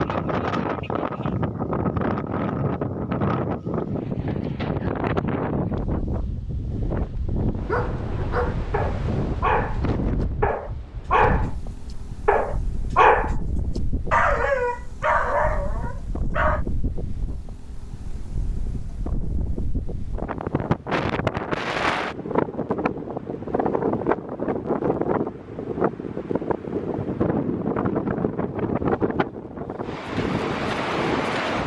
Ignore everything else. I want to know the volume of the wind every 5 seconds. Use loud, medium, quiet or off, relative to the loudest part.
loud, loud, medium, medium, loud, loud, loud.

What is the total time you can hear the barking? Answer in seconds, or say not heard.
9 s.